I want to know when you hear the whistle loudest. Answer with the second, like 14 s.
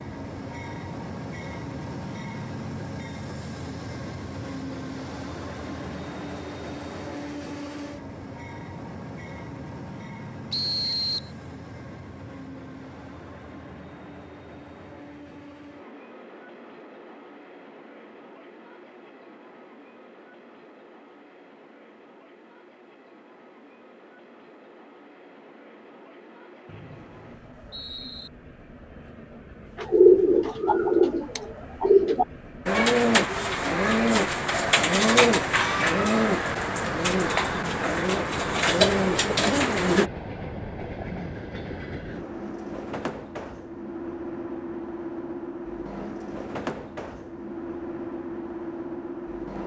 11 s.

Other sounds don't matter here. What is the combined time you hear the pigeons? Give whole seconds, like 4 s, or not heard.
10 s.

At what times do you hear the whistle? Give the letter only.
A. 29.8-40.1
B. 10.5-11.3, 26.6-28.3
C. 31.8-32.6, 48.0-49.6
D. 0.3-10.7
B.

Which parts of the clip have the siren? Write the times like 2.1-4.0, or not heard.
not heard.